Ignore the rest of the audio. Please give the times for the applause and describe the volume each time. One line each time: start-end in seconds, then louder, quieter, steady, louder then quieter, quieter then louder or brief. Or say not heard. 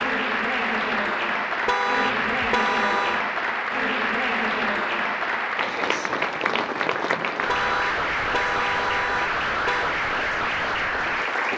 0.0-11.5 steady.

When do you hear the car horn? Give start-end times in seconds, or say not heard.
1.6-3.2, 7.5-9.9.